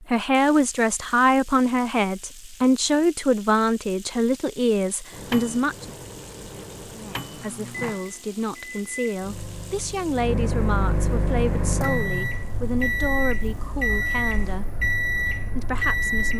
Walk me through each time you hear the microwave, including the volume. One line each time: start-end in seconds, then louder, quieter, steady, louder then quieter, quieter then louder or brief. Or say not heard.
5.1-16.3 louder.